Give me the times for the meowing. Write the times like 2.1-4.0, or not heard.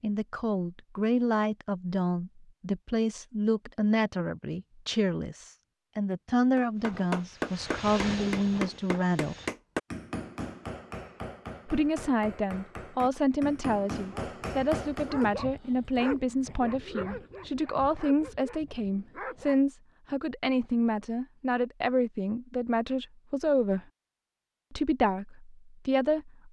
not heard.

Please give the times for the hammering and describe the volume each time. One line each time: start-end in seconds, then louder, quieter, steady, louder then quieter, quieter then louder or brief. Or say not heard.
6.5-15.3 quieter then louder.